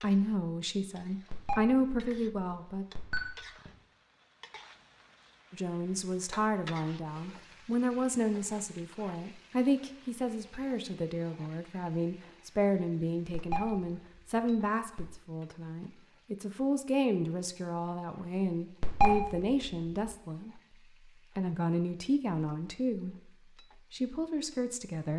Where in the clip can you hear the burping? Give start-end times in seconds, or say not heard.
not heard.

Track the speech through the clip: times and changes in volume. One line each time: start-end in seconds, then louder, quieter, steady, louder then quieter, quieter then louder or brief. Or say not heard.
0.0-2.9 brief
5.5-20.6 steady
21.4-23.3 brief
23.9-25.1 brief.